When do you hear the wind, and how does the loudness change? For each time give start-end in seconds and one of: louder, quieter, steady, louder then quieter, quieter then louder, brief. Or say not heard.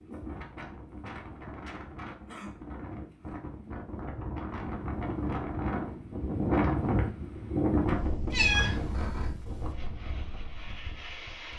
0.0-11.5 louder then quieter.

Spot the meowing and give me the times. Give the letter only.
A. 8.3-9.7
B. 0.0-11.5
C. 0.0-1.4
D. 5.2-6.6
A.